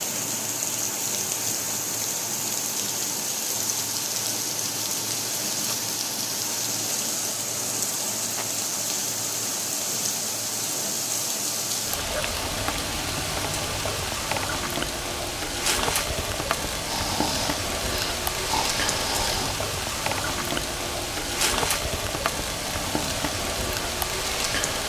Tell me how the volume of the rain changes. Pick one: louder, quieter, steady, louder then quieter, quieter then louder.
steady.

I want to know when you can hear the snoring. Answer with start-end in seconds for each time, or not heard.
16.9-19.6.